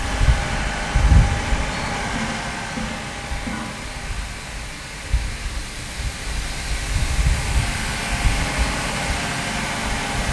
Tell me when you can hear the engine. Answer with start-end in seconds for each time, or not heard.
0.0-10.2.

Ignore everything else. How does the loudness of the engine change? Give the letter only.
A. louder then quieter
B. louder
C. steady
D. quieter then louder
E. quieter
D.